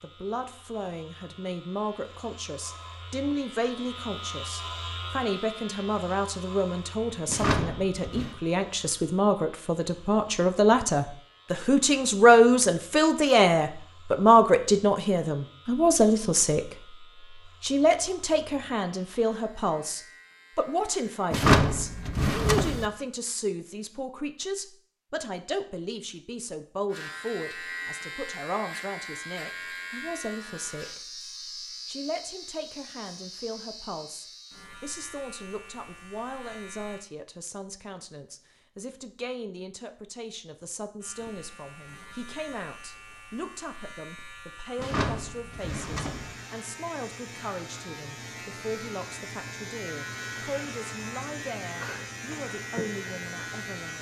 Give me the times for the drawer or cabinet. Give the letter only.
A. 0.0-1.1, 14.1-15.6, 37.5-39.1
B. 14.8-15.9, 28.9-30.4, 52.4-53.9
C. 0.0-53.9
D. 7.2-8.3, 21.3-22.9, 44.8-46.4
D.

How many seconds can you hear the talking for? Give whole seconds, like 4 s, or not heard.
54 s.